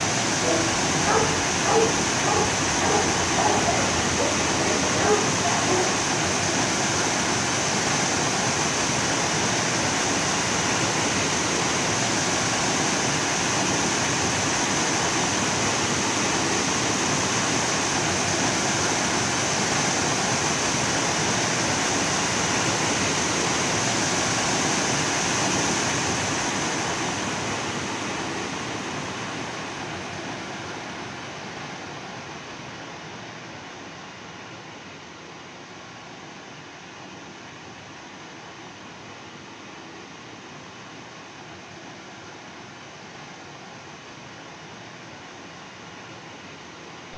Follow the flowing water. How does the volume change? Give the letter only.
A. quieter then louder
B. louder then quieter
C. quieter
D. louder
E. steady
C.